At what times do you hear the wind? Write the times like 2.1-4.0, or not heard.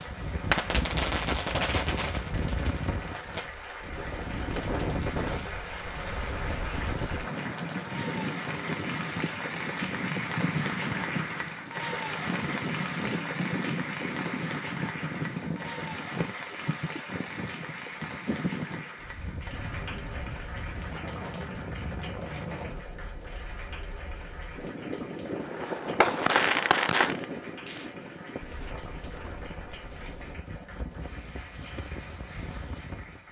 0.0-33.2.